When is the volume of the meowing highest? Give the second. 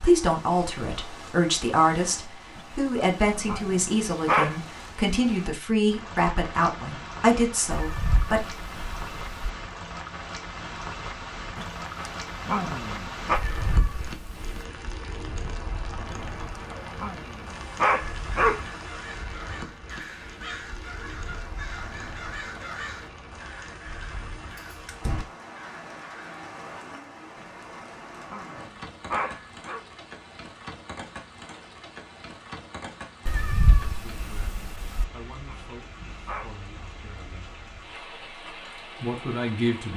34 s.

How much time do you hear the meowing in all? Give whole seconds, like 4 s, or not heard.
5 s.